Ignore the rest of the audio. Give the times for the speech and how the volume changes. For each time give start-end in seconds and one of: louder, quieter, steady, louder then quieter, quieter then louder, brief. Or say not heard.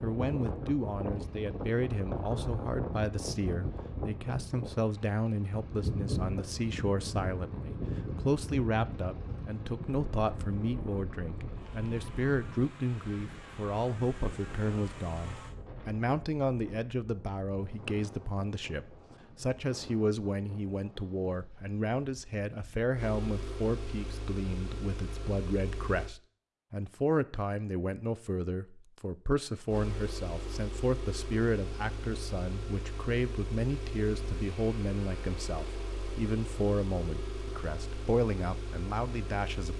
0.0-39.7 steady.